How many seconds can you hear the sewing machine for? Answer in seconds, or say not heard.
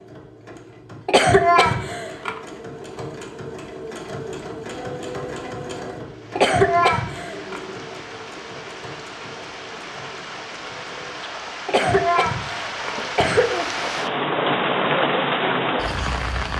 11 s.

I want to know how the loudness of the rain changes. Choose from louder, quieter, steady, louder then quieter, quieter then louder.
louder.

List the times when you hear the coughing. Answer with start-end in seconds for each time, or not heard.
1.1-2.4, 6.3-7.6, 11.7-13.7.